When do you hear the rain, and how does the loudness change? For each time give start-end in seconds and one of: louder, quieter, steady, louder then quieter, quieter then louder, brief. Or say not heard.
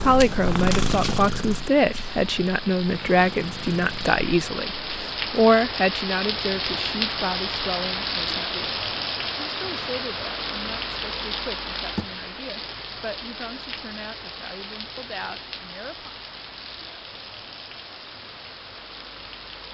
0.0-19.6 louder then quieter.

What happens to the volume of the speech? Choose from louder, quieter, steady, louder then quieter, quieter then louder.
quieter.